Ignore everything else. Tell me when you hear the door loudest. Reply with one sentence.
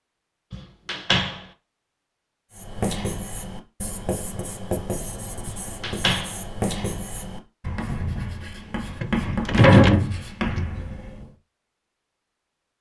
The loudest moment of the door is at 10 seconds.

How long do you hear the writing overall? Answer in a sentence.
The writing can be heard for 9 seconds in total.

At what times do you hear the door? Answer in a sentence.
The door can be heard from 0.5 to 1.4 s, from 5.5 to 6.3 s and from 9.0 to 10.2 s.